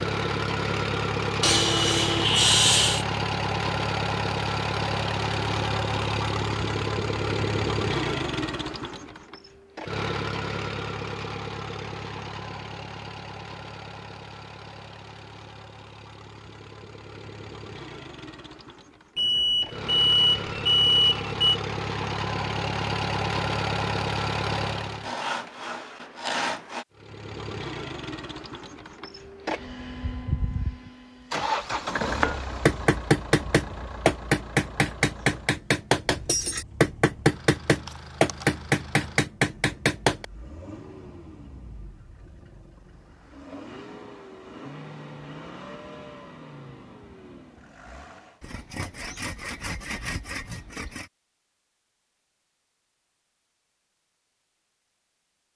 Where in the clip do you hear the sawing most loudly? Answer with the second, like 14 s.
3 s.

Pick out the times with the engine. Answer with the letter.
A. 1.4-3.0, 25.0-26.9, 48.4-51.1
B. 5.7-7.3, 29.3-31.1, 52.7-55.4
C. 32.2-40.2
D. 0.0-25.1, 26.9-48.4
D.